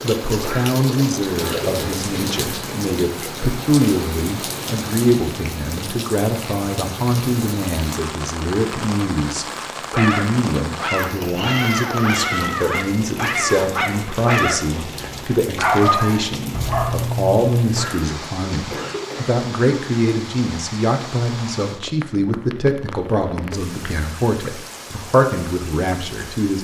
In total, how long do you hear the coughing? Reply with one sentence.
You can hear the coughing for 3 seconds altogether.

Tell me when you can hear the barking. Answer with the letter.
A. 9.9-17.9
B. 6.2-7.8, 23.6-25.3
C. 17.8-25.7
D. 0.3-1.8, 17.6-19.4
A.